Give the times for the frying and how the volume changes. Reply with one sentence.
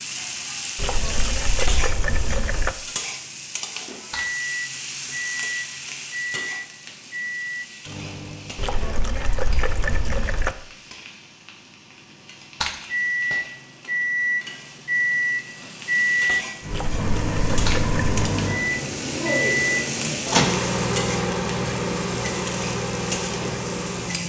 You can hear the frying from 0.0 to 24.2 s, getting quieter then louder.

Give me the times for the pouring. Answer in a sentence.
The pouring can be heard from 0.8 to 2.8 s, from 8.6 to 10.6 s and from 16.7 to 18.3 s.